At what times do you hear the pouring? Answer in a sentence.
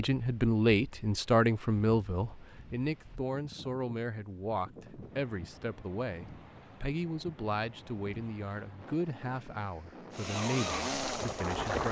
You can't hear the pouring here.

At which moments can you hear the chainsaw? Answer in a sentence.
You can hear the chainsaw from 10.2 to 11.8 s.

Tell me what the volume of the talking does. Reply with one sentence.
The loudness of the talking goes down.